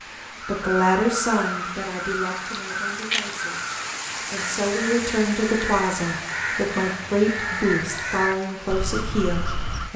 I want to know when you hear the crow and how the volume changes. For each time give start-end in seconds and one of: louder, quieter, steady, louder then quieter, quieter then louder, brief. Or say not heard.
0.4-9.9 steady.